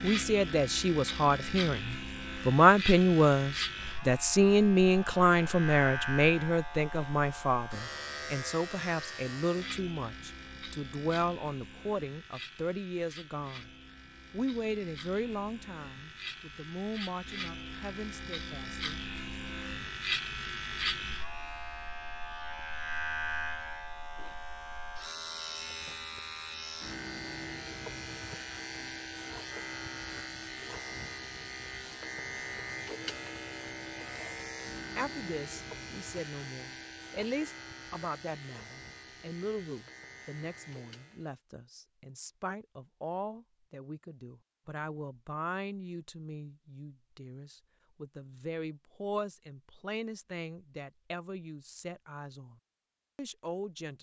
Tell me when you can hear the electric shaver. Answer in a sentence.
The electric shaver can be heard from 0.0 to 41.4 s.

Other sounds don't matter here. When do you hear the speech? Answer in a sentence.
The speech can be heard from 0.0 to 13.7 s, from 14.3 to 18.9 s and from 35.0 to 53.9 s.